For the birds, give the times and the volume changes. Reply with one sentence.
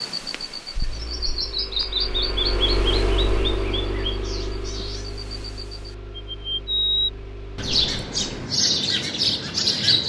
The birds can be heard from 0.0 to 10.0 s, getting quieter then louder.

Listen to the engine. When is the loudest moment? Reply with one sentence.
The loudest moment of the engine is at 3 seconds.